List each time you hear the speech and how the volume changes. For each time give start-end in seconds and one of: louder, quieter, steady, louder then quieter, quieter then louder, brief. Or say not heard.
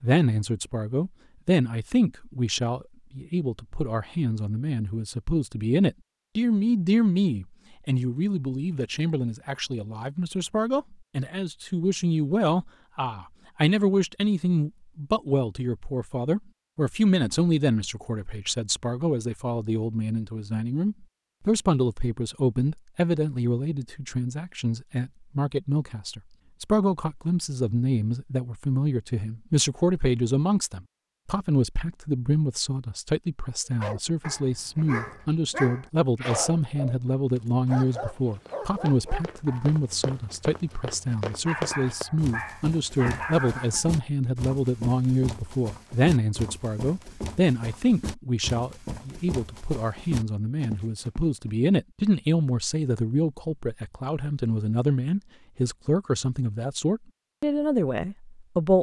0.0-58.7 steady.